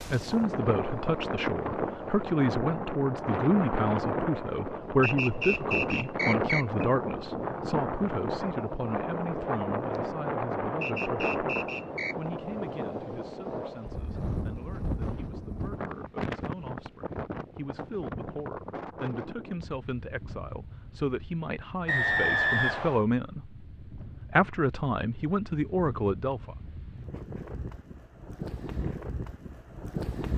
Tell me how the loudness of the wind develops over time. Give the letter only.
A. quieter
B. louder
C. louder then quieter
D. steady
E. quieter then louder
A.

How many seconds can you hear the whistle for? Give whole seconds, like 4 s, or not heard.
4 s.